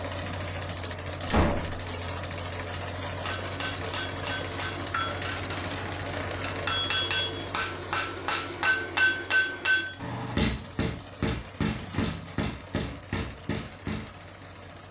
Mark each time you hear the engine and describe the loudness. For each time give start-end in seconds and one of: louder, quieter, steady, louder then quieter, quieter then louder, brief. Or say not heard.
0.0-14.8 quieter.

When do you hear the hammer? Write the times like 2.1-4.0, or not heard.
3.2-14.1.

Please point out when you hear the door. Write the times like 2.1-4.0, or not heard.
1.2-1.9, 11.8-13.0.